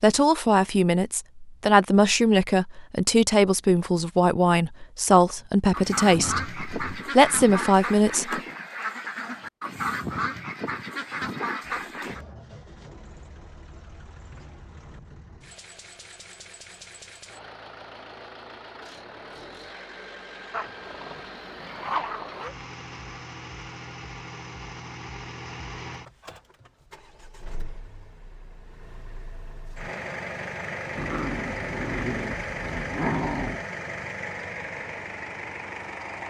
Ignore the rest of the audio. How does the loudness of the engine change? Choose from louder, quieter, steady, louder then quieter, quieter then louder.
louder.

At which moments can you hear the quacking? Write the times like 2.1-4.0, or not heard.
5.7-12.2.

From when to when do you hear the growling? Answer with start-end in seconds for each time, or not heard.
6.1-7.0, 20.5-22.5, 30.9-33.6.